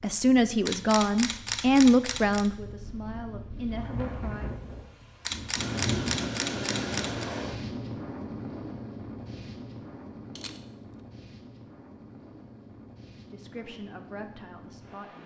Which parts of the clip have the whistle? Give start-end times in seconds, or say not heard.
not heard.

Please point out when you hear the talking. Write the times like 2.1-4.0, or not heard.
0.0-4.5, 13.3-15.2.